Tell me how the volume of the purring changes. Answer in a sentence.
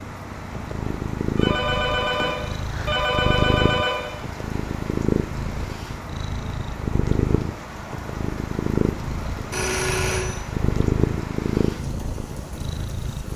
The loudness of the purring stays about the same.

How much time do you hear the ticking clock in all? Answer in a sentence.
The ticking clock can't be heard in this clip.